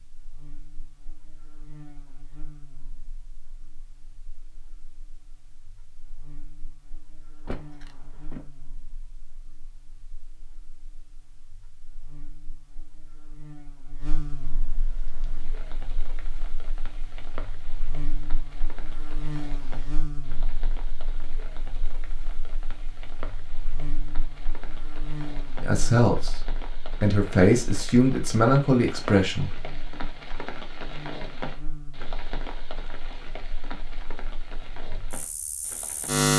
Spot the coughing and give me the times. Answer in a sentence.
You can't hear the coughing here.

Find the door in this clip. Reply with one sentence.
You can hear the door from 7.5 to 8.4 s.